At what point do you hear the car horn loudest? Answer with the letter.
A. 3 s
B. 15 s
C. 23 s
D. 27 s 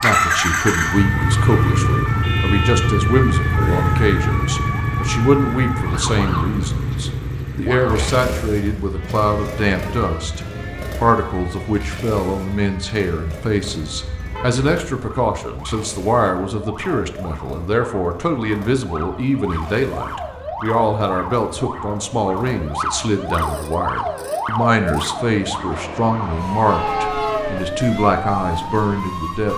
D.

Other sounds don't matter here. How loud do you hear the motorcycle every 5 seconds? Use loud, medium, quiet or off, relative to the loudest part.
loud, medium, quiet, quiet, quiet, quiet.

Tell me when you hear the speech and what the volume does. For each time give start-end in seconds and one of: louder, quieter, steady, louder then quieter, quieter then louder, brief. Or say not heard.
0.0-29.5 steady.